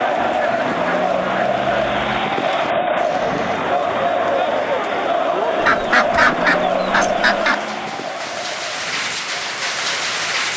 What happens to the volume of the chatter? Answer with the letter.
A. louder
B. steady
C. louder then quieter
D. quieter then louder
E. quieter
E.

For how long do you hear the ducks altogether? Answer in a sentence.
The ducks can be heard for 4 seconds in total.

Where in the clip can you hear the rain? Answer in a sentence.
You can hear the rain from 0.0 to 10.5 s.